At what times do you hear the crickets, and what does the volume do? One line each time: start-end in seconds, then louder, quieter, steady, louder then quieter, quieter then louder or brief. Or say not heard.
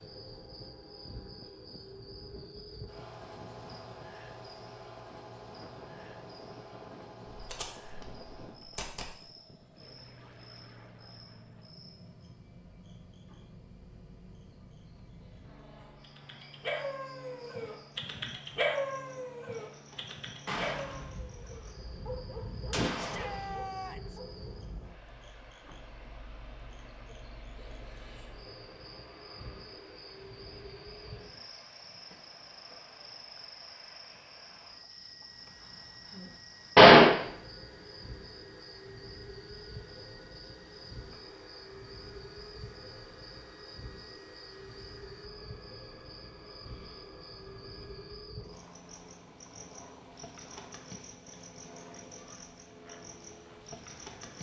0.0-54.3 quieter then louder.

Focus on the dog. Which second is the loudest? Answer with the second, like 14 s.
19 s.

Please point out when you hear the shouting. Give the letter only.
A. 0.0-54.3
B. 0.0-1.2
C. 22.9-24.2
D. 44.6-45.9
C.